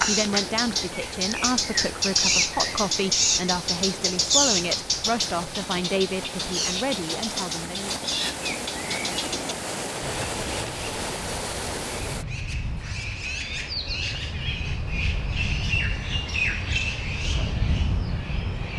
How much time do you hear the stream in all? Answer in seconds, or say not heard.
12 s.